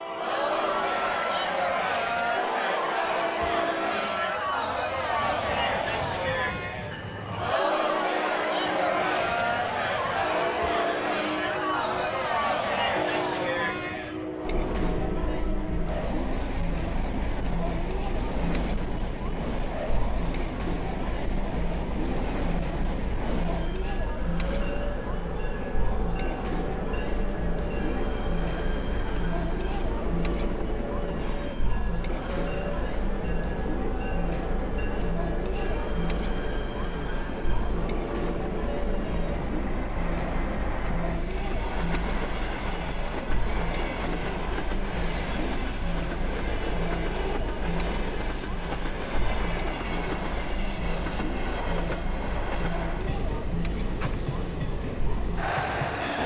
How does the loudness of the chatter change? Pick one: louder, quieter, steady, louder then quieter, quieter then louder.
quieter.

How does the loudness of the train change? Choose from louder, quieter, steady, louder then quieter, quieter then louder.
steady.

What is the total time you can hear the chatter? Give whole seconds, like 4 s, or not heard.
56 s.